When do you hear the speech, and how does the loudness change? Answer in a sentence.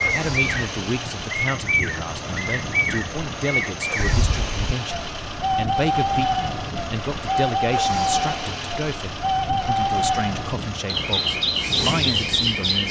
The speech can be heard from 0.0 to 12.8 s, at a steady volume.